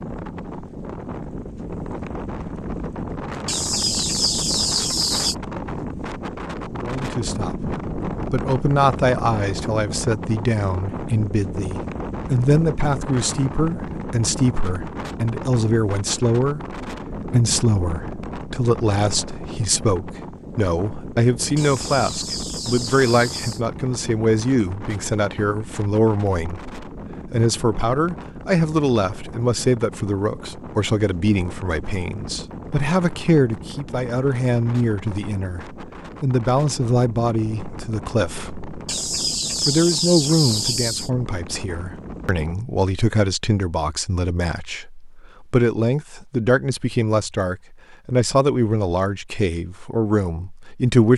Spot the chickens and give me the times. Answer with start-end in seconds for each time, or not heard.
3.5-5.3, 21.6-23.6, 38.9-41.1.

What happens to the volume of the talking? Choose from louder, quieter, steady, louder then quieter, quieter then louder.
steady.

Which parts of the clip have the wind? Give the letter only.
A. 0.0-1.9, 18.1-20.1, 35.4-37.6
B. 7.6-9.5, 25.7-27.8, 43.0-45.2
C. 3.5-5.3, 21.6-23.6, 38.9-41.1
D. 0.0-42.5
D.